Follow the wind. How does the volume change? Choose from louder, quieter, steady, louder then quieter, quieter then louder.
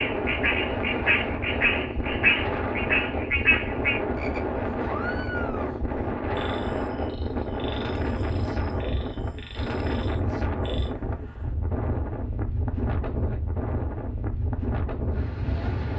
steady.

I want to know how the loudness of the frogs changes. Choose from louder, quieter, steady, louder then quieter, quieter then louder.
quieter.